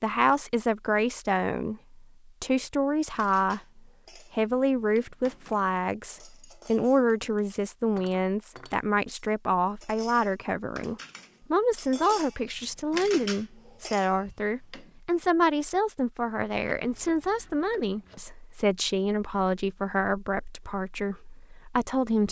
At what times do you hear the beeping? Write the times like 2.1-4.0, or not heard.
not heard.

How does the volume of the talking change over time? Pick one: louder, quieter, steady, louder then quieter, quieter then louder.
steady.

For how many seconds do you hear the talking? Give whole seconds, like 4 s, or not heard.
22 s.